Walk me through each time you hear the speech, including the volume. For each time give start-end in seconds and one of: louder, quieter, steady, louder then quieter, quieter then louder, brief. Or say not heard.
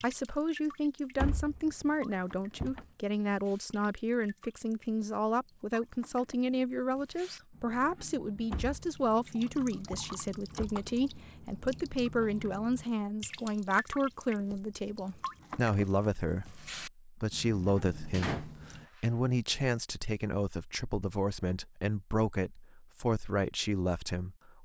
0.0-24.6 steady.